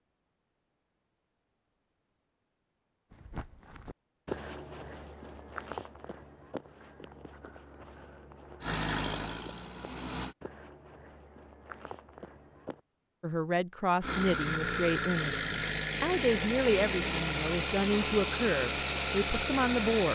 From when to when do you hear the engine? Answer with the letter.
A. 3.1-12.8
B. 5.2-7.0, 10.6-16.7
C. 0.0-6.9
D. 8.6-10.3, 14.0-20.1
D.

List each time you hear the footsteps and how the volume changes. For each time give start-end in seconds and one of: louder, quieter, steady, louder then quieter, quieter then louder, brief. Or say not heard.
3.1-12.8 quieter.